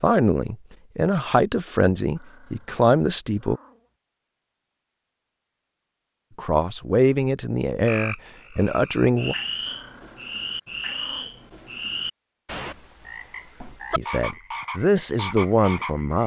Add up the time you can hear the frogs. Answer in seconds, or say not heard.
8 s.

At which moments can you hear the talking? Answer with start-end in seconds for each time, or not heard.
0.0-3.6, 6.3-9.3, 13.6-16.2.